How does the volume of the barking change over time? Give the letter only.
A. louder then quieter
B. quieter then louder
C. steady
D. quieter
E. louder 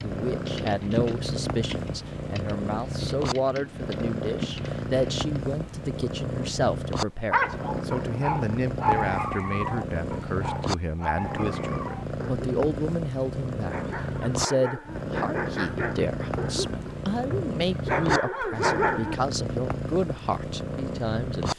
B.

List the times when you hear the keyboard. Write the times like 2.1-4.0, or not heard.
0.0-5.2.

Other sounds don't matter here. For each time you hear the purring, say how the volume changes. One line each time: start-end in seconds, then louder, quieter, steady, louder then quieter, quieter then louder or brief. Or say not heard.
0.0-21.5 steady.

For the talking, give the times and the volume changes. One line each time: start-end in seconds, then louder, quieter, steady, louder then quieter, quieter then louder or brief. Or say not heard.
0.0-21.5 steady.